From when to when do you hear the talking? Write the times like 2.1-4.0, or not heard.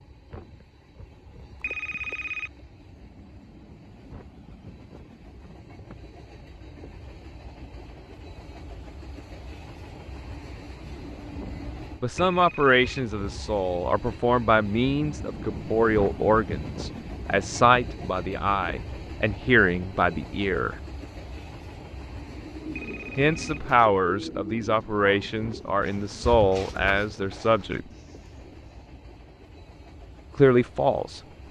12.0-20.8, 23.1-27.8, 30.4-31.2.